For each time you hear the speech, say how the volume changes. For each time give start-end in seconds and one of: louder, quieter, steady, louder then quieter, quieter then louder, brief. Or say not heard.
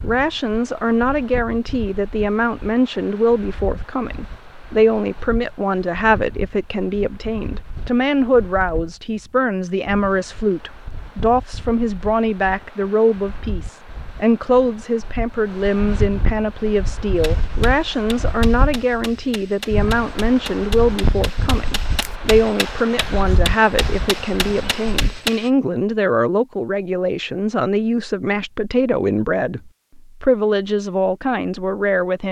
0.0-32.2 steady.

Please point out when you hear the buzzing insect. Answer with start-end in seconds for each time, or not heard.
not heard.